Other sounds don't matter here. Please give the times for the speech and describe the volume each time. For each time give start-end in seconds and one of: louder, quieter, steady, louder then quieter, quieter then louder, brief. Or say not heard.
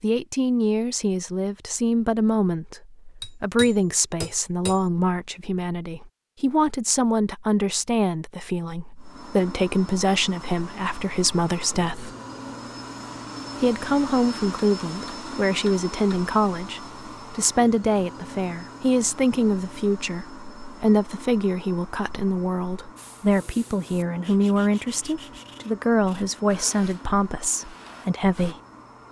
0.0-12.2 steady
13.6-28.6 steady.